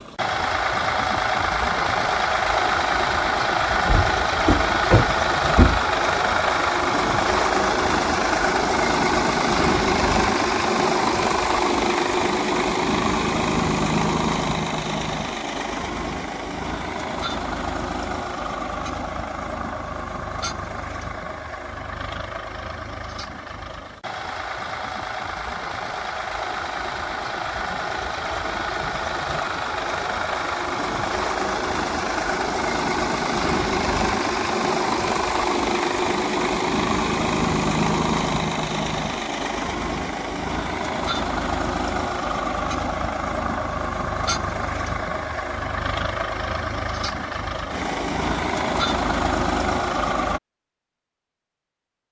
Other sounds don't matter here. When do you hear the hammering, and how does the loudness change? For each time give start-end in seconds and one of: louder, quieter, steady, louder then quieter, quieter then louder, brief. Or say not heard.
not heard.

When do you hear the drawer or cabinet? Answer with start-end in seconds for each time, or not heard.
3.9-5.8.